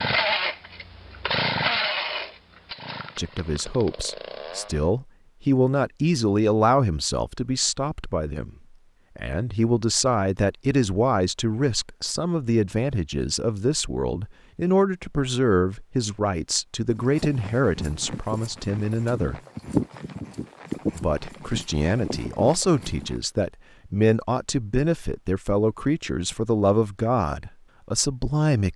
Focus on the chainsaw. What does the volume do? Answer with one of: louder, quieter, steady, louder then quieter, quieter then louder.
louder then quieter.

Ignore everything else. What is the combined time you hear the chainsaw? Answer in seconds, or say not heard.
5 s.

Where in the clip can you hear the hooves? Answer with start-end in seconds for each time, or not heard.
16.9-23.2.